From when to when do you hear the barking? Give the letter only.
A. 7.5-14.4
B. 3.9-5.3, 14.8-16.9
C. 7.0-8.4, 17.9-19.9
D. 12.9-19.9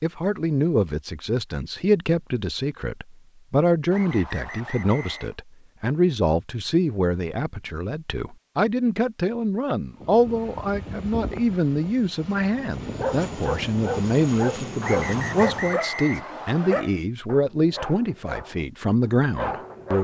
D.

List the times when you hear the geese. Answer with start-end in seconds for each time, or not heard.
not heard.